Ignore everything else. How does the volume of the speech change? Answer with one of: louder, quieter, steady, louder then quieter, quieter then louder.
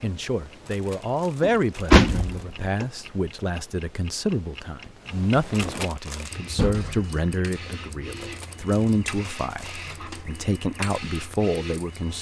steady.